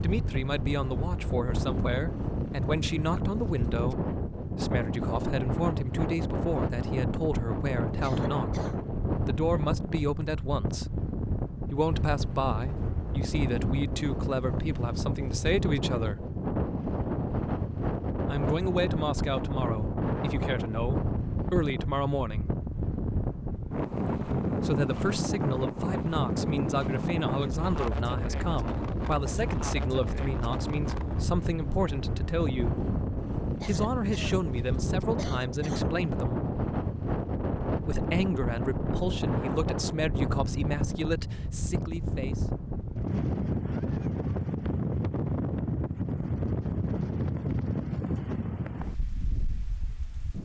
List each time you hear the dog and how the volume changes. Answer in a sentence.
You can't hear the dog here.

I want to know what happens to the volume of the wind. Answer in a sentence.
The loudness of the wind stays about the same.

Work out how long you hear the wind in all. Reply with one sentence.
You can hear the wind for 50 seconds altogether.